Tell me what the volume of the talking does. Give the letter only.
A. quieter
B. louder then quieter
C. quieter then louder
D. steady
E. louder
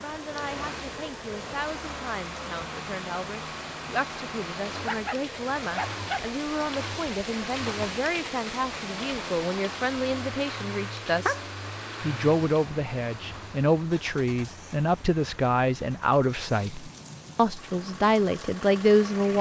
E.